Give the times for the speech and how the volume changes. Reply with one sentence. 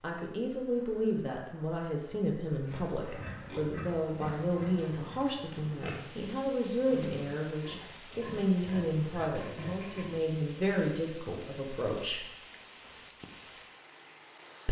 The speech can be heard from 0.0 to 12.2 s, at a steady volume.